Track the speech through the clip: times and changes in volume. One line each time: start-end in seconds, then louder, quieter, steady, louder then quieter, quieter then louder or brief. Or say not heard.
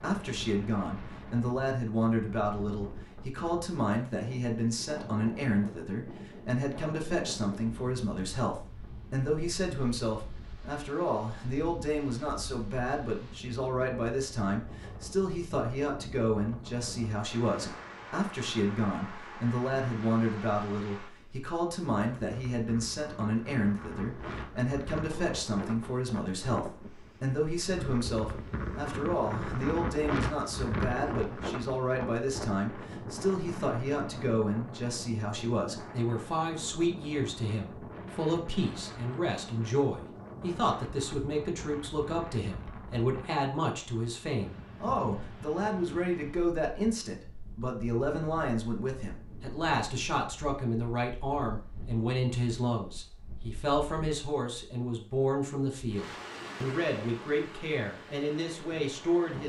0.0-59.4 steady.